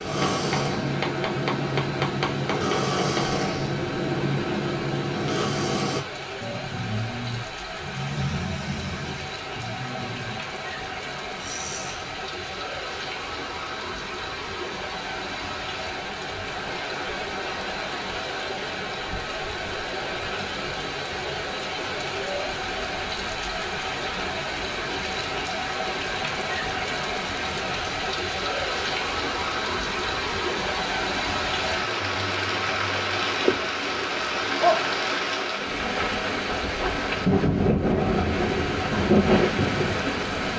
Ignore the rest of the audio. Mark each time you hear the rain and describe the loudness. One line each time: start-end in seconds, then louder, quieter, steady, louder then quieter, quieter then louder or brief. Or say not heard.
0.0-40.5 louder.